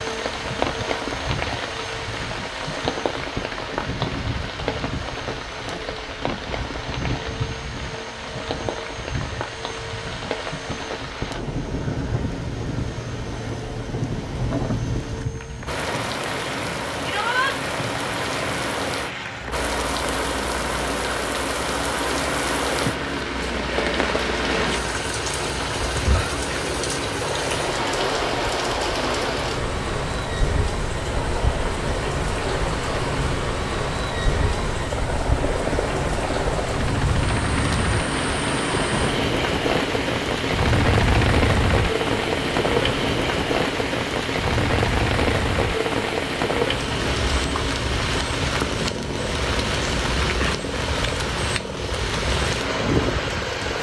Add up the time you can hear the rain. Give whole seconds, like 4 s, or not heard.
54 s.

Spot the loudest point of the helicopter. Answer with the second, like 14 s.
41 s.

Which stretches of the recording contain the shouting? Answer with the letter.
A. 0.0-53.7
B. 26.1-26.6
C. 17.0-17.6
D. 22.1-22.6
C.